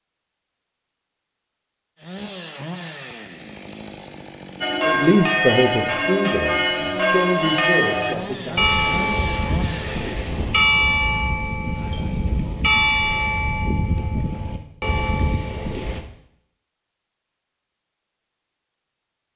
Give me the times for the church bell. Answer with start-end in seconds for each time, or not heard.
4.6-16.0.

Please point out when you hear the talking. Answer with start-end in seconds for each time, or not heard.
4.8-8.7.